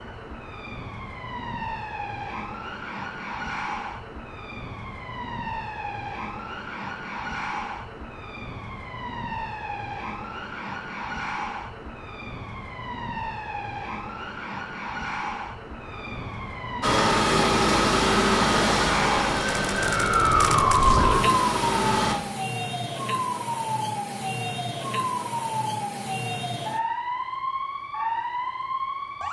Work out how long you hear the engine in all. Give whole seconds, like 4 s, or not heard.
5 s.